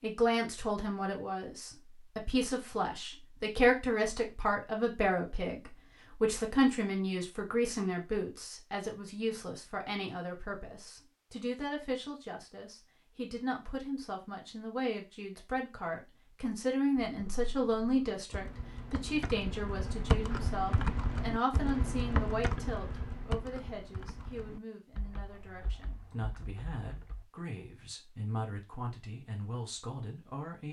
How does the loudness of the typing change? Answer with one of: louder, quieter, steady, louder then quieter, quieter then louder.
louder then quieter.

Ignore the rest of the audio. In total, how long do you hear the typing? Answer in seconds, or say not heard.
10 s.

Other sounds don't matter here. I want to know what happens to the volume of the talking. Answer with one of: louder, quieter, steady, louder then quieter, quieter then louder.
quieter.